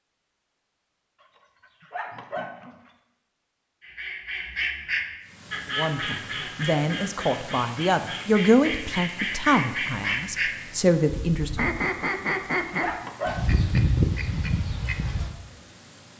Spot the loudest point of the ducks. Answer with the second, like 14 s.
14 s.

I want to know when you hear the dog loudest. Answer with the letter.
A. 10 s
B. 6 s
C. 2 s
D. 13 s
D.